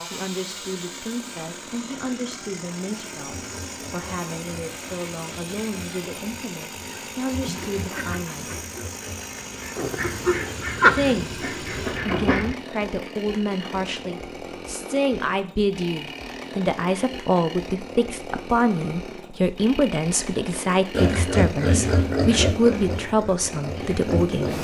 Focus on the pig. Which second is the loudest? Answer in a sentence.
The volume of the pig peaks at 22 seconds.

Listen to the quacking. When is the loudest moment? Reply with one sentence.
The volume of the quacking peaks at 11 seconds.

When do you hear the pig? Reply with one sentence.
The pig can be heard from 3.3 to 9.3 s and from 20.9 to 24.5 s.